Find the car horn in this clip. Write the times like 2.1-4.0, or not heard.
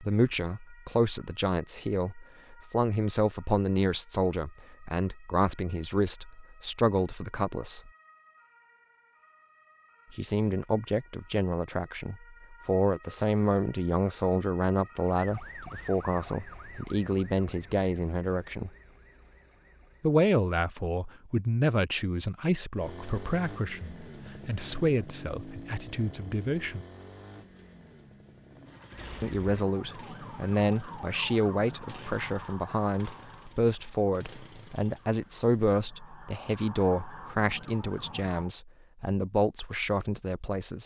not heard.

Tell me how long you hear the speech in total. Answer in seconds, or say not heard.
35 s.